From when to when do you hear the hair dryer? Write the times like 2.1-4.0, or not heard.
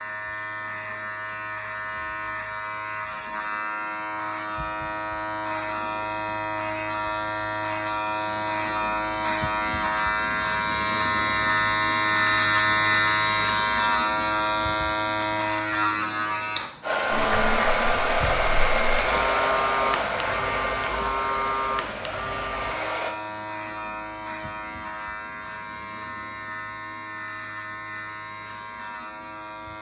16.8-23.1.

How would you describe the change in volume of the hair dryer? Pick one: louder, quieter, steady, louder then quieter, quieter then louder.
quieter.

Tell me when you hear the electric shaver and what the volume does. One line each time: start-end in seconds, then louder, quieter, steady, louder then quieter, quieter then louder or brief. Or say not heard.
0.0-29.7 louder then quieter.